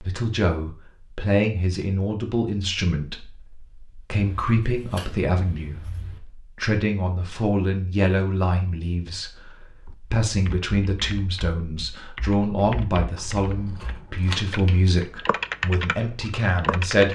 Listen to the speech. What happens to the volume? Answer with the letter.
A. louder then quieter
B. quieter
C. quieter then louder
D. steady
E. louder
D.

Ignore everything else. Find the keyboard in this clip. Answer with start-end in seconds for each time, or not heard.
9.8-17.0.